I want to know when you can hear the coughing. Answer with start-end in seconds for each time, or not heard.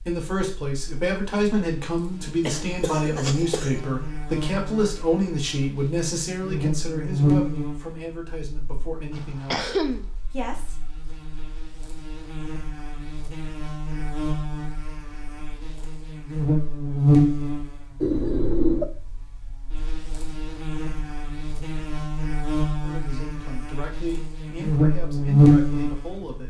2.5-3.8, 9.2-10.1, 18.0-18.9.